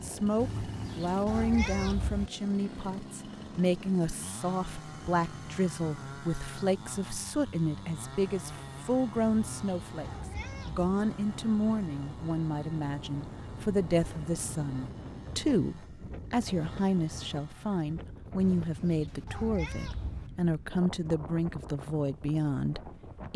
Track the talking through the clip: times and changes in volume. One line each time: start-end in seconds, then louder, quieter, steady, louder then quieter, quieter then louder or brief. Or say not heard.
0.0-23.3 steady.